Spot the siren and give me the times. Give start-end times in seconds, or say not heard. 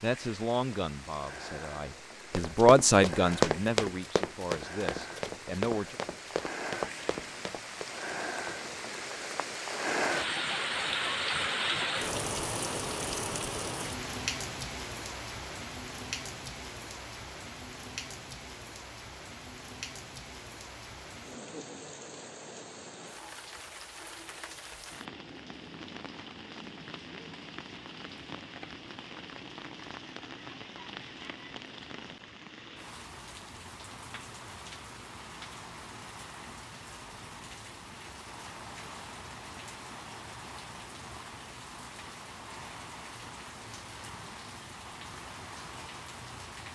not heard.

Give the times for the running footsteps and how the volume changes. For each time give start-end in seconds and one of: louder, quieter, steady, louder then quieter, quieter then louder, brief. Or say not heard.
2.3-7.9 quieter.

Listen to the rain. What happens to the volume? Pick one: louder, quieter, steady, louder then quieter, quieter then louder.
louder then quieter.